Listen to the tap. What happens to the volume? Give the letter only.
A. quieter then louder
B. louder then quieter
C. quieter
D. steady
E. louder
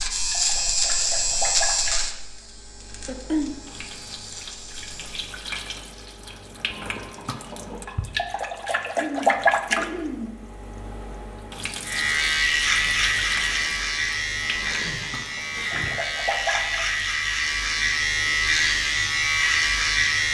B.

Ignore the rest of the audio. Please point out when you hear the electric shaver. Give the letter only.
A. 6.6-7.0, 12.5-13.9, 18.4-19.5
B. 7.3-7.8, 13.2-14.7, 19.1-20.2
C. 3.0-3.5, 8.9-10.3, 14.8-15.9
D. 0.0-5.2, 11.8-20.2
D.